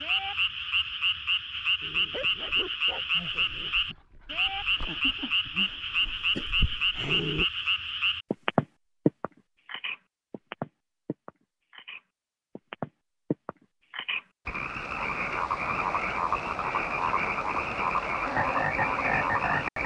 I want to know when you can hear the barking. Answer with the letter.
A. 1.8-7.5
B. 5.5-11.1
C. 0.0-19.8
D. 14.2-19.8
A.